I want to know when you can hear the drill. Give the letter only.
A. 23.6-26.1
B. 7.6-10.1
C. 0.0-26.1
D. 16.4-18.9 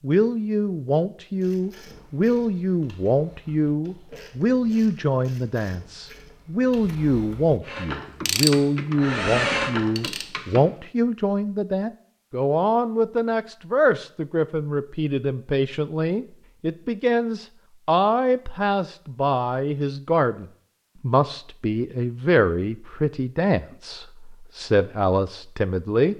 B.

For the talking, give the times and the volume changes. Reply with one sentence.
The talking can be heard from 0.0 to 26.1 s, at a steady volume.